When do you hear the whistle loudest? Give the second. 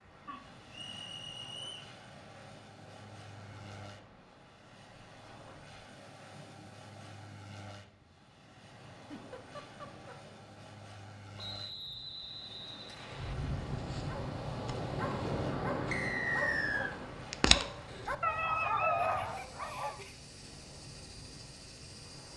16 s.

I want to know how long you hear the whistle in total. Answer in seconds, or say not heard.
4 s.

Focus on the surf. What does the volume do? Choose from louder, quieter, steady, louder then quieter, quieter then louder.
louder then quieter.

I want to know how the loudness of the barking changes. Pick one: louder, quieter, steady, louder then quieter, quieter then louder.
louder.